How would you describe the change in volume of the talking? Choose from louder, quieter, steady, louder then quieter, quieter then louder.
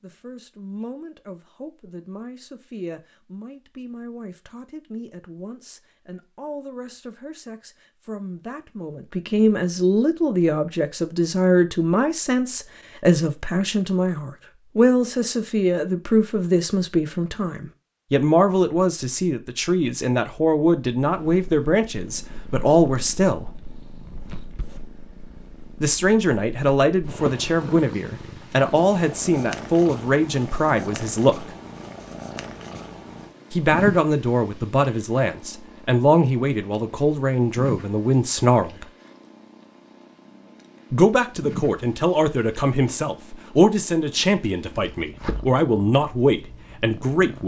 louder.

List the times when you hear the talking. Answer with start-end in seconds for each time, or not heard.
0.0-23.4, 25.8-31.5, 33.5-38.9, 40.9-47.4.